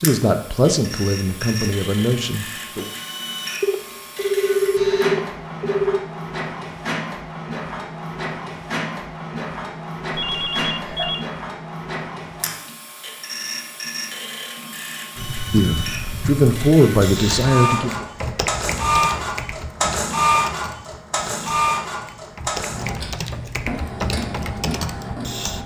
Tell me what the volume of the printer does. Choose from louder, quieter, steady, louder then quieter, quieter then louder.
louder.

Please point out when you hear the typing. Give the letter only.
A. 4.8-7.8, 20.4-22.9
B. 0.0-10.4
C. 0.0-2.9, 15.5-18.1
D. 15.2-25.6
D.